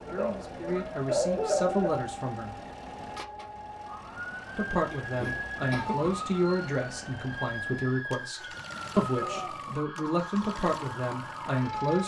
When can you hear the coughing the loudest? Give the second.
1 s.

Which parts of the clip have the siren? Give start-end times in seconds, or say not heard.
0.0-12.0.